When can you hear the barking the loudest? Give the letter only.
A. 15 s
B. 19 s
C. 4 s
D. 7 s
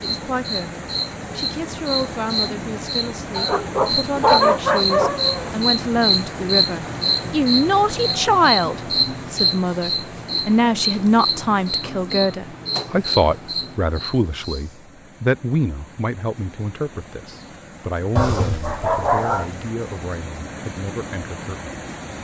C.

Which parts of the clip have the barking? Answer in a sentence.
You can hear the barking from 3.4 to 5.5 s and from 18.1 to 19.6 s.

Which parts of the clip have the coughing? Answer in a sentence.
The coughing can't be heard in this clip.